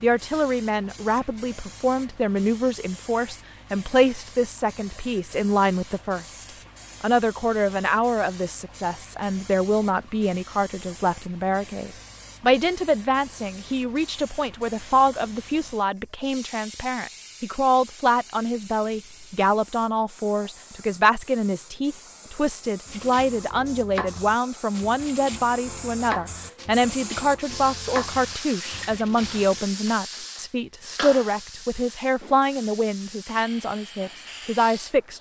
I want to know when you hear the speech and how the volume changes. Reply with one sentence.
You can hear the speech from 0.0 to 35.1 s, at a steady volume.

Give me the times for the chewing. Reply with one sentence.
You can't hear the chewing here.